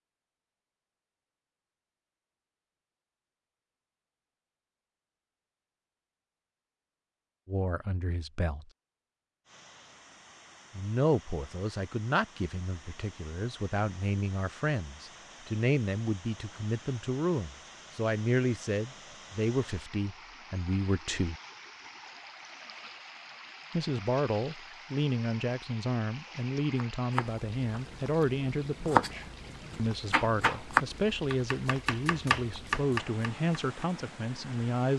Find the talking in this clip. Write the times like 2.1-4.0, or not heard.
7.5-8.7, 10.8-21.4, 23.7-34.9.